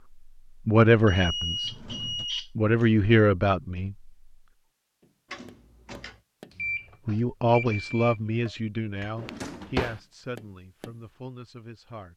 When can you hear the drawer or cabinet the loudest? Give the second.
10 s.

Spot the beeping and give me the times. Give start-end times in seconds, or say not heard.
1.1-2.9, 6.5-8.2.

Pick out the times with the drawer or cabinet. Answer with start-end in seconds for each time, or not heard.
1.5-2.2, 5.3-6.2, 9.2-10.0.